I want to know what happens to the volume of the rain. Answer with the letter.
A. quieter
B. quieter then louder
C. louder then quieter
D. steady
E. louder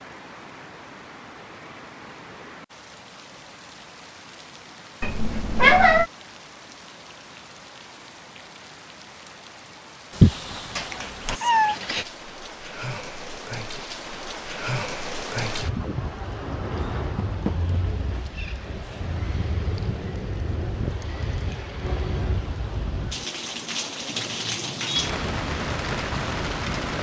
E.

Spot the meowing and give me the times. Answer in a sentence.
The meowing can be heard from 5.0 to 6.0 s, from 10.2 to 12.1 s and from 24.1 to 25.2 s.